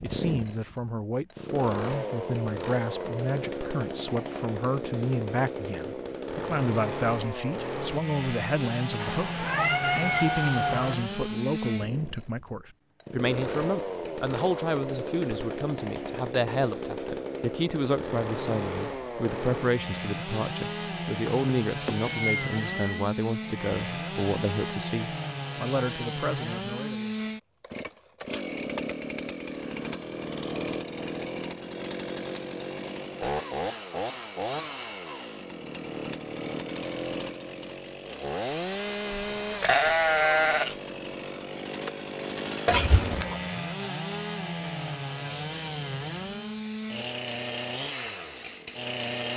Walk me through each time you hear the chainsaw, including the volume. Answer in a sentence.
The chainsaw can be heard from 0.0 to 49.3 s, at a steady volume.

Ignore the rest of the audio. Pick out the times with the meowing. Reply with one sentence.
The meowing can be heard from 8.9 to 10.9 s, from 21.2 to 23.0 s and from 42.6 to 43.4 s.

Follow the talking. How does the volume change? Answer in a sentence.
The loudness of the talking stays about the same.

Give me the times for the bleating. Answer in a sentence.
You can hear the bleating from 39.1 to 40.8 s.